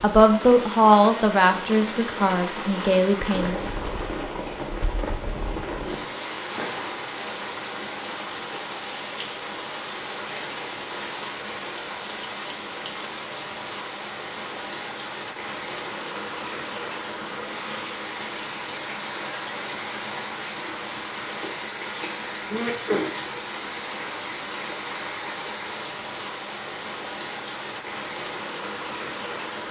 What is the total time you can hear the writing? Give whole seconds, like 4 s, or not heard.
not heard.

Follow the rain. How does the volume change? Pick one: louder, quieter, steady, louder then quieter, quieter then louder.
steady.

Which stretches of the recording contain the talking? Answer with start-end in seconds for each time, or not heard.
0.0-3.6.